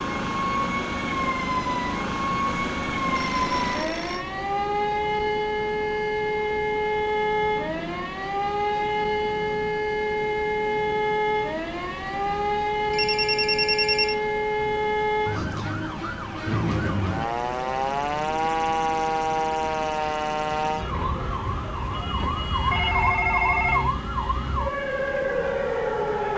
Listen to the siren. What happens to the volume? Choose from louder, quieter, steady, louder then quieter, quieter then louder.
steady.